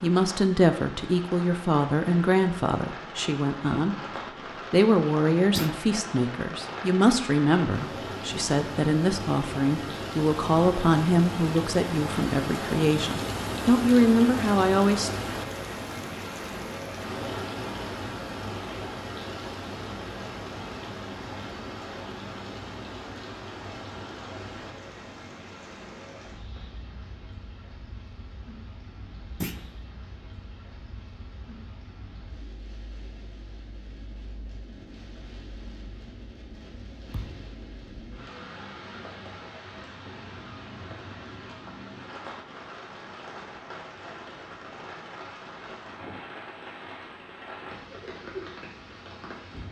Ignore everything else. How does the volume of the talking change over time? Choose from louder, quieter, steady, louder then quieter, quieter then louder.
steady.